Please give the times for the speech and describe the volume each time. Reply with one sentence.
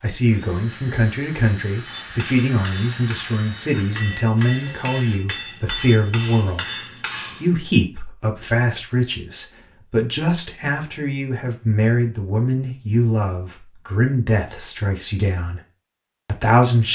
You can hear the speech from 0.0 to 15.6 s, at a steady volume; and briefly from 16.2 to 16.8 s.